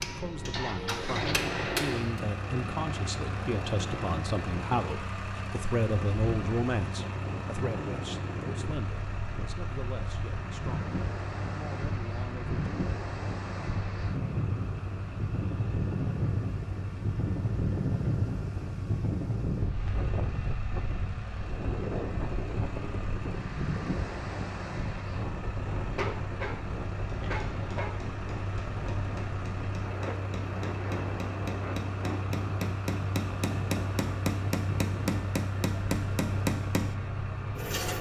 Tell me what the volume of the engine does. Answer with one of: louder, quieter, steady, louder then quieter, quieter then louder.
quieter then louder.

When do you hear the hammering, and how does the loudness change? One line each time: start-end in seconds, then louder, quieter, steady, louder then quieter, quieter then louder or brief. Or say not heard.
0.0-2.2 brief
27.2-37.0 louder.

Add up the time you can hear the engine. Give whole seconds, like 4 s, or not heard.
38 s.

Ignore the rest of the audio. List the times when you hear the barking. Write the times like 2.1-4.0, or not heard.
25.9-27.9.